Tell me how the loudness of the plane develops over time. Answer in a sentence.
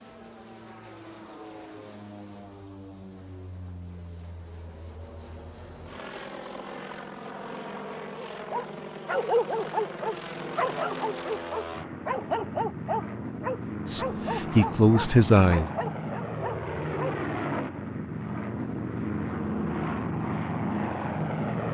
The volume of the plane goes up.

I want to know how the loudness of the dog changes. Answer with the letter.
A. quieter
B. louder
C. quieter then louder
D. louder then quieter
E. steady
A.